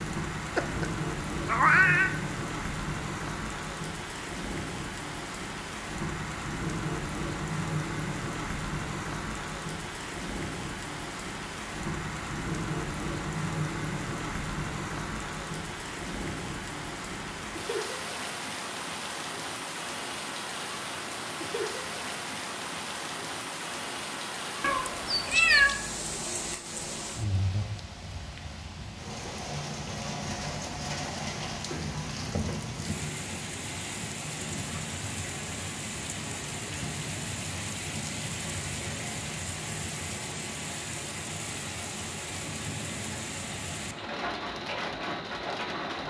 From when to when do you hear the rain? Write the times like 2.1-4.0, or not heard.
0.0-46.0.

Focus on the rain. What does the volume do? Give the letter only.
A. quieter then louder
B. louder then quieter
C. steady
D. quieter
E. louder
C.